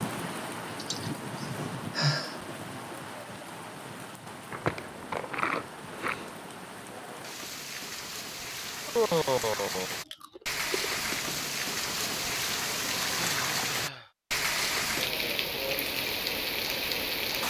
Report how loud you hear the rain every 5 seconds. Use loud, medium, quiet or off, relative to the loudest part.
medium, medium, loud, loud.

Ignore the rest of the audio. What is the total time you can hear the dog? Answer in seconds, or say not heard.
not heard.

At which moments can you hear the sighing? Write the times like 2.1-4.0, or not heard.
0.8-2.4, 8.8-10.0, 13.2-14.1.